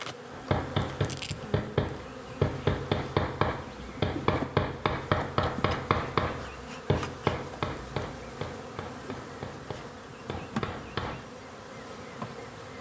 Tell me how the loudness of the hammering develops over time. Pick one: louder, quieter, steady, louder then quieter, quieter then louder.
quieter.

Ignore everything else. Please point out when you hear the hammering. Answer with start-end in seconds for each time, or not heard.
0.3-11.2.